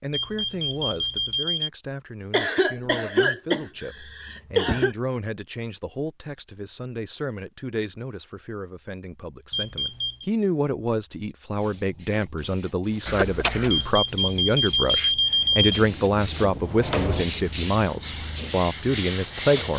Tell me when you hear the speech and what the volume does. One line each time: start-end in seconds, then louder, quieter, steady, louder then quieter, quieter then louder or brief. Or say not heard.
0.0-19.7 louder.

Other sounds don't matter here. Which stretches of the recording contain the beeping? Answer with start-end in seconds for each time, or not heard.
0.1-1.7, 9.5-10.2, 13.7-15.8.